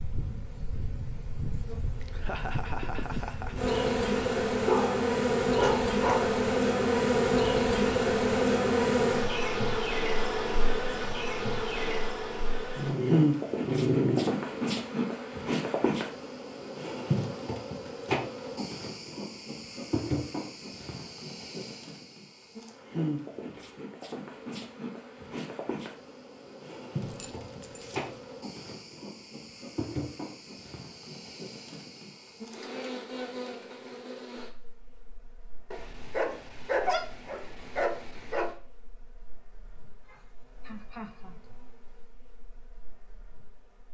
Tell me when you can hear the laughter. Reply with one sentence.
The laughter can be heard from 2.0 to 3.8 s and from 39.6 to 41.6 s.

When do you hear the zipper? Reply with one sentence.
You can't hear the zipper here.